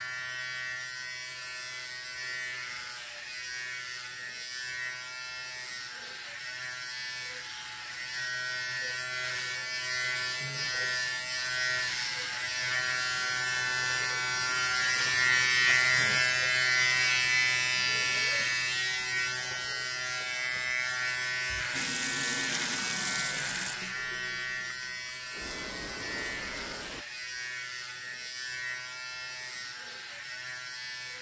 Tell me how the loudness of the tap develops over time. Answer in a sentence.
The volume of the tap goes down, then up.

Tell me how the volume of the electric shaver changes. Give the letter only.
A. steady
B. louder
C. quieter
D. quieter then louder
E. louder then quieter
E.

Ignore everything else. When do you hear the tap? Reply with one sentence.
The tap can be heard from 21.4 to 27.1 s.